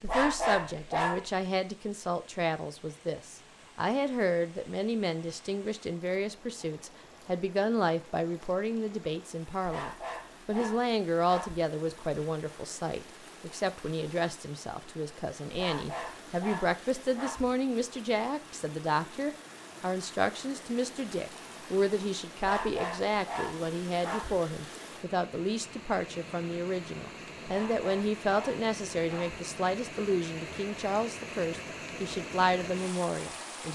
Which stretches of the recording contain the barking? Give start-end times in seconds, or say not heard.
0.0-1.4, 9.7-11.6, 15.5-17.4, 22.4-24.4, 27.4-29.4.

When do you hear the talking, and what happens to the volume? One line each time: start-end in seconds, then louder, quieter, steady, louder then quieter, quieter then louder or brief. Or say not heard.
0.0-33.6 steady.